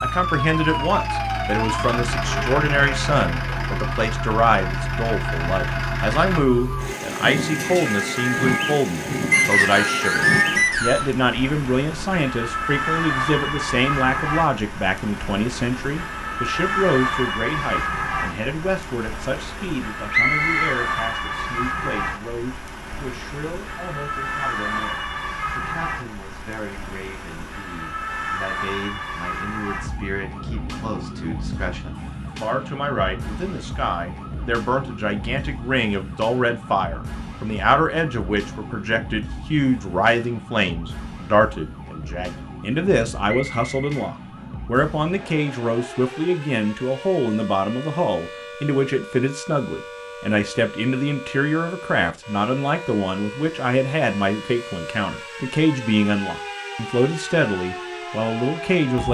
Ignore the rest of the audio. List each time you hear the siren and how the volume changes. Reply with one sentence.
You can hear the siren from 0.0 to 59.0 s, getting quieter.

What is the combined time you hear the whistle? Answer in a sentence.
You can hear the whistle for 3 seconds altogether.